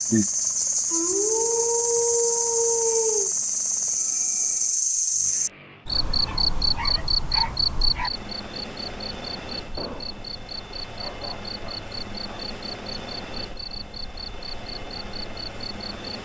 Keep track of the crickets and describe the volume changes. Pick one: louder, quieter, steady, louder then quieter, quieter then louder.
quieter.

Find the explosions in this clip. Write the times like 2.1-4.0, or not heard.
9.8-10.2.